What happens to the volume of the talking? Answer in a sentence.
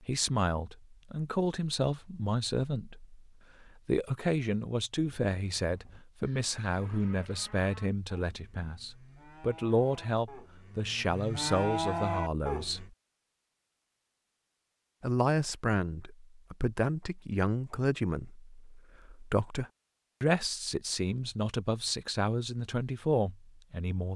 The loudness of the talking stays about the same.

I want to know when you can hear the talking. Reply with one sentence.
The talking can be heard from 0.0 to 12.9 s and from 15.0 to 24.1 s.